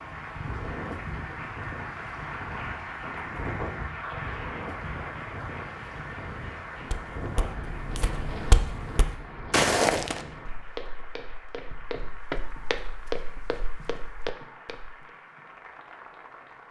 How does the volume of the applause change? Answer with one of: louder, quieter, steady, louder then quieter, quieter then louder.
quieter.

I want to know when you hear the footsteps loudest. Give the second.
10 s.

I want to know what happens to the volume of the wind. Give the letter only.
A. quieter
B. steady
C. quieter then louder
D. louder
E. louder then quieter
B.